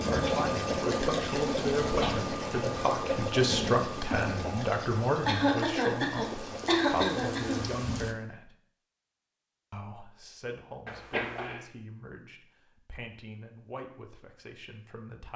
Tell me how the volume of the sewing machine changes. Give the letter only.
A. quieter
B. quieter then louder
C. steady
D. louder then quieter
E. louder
A.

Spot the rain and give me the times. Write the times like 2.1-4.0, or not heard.
0.0-8.2.